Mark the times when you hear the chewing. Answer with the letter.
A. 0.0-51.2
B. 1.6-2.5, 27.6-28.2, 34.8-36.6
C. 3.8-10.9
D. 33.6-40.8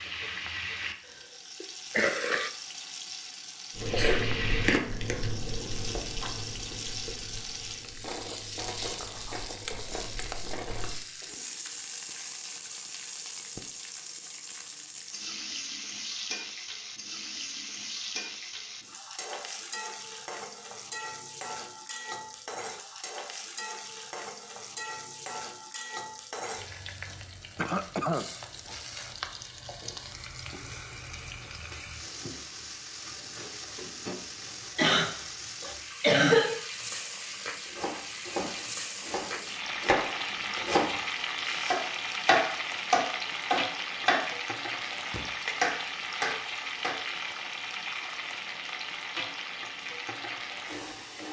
C.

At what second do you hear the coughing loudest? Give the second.
36 s.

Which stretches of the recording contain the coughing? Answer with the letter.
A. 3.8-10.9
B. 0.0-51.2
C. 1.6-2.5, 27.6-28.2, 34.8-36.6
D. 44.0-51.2
C.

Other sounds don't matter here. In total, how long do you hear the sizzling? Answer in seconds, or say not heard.
51 s.